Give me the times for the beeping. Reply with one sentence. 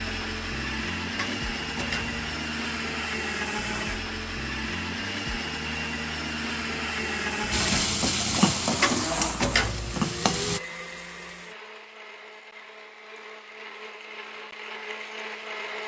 You can't hear the beeping here.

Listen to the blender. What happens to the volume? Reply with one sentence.
The volume of the blender goes down.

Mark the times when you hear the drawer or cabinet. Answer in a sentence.
The drawer or cabinet can be heard from 1.1 to 2.2 s and from 8.8 to 10.1 s.